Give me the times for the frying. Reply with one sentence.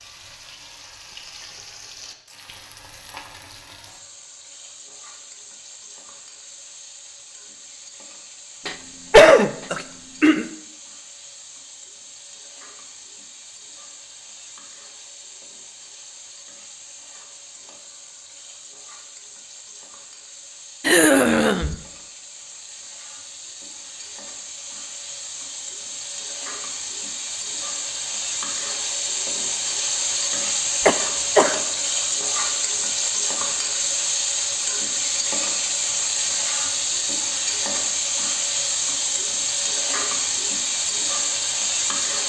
You can hear the frying from 0.0 to 42.2 s.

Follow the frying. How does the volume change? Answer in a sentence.
The loudness of the frying goes up.